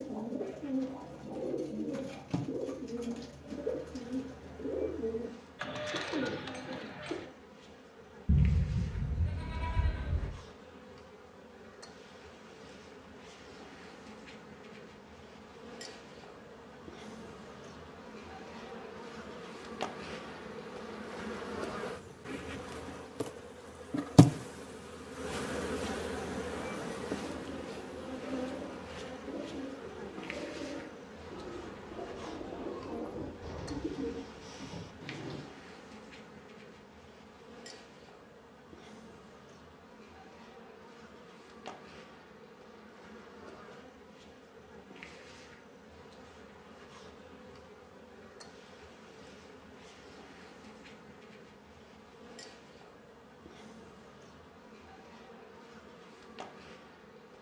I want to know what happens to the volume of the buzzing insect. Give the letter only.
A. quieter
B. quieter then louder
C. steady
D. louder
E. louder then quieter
E.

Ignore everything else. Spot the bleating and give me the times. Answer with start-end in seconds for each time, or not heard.
8.2-10.3.